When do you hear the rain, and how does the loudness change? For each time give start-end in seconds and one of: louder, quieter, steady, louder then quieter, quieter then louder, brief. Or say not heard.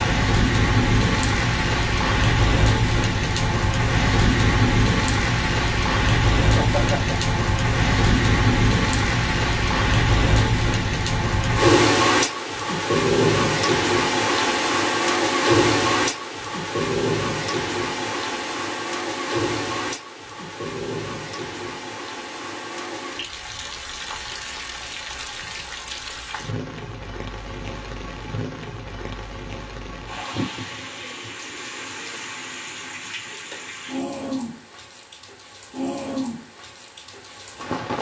0.0-37.9 quieter.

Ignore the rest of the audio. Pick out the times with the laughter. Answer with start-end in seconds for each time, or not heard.
6.5-7.3.